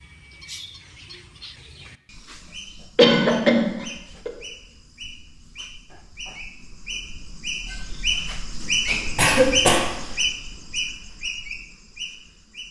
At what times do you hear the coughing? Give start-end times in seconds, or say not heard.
3.0-4.3, 9.2-9.9.